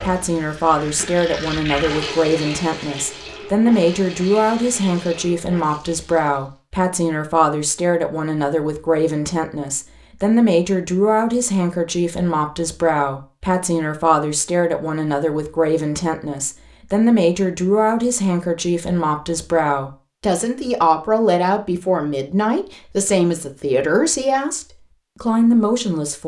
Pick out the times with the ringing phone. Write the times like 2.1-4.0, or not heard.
not heard.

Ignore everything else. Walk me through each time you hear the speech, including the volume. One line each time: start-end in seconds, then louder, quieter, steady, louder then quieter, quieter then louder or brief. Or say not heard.
0.0-26.2 steady.